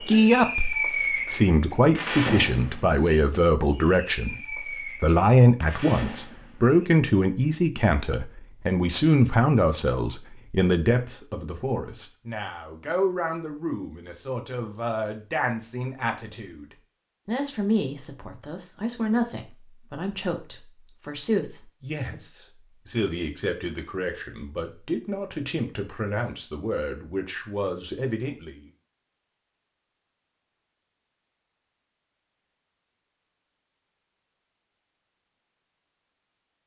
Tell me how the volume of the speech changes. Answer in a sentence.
The loudness of the speech goes down.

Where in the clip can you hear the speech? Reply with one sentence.
You can hear the speech from 0.0 to 28.6 s.